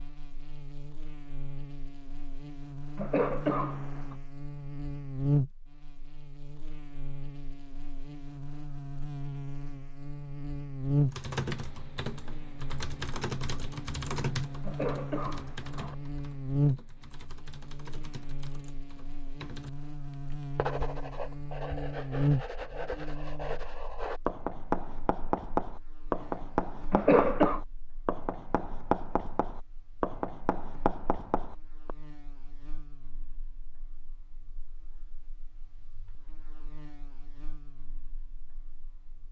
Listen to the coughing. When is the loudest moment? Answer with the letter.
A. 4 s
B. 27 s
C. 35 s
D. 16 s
B.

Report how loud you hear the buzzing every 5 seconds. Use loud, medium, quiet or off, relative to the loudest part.
medium, loud, loud, loud, loud, quiet, quiet, quiet.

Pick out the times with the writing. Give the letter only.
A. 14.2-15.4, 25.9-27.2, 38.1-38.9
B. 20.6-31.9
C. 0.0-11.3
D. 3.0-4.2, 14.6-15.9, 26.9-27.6
B.